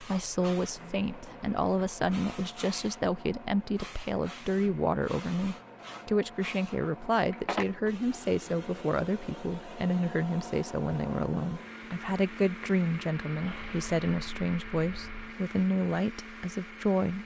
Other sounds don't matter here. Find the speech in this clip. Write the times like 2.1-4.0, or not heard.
0.0-17.2.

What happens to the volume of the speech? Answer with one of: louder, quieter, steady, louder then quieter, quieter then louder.
steady.